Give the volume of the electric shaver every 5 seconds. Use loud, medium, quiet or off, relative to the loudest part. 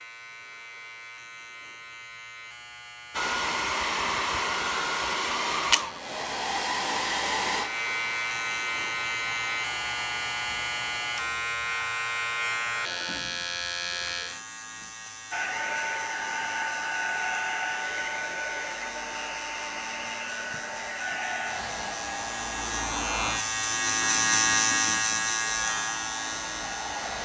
quiet, loud, loud, quiet, loud, loud.